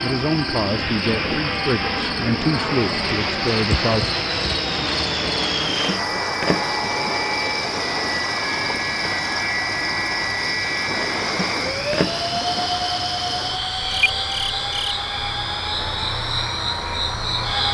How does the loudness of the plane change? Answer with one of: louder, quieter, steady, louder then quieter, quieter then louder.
steady.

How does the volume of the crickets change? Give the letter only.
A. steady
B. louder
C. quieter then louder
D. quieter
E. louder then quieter
A.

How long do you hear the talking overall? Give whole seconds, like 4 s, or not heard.
4 s.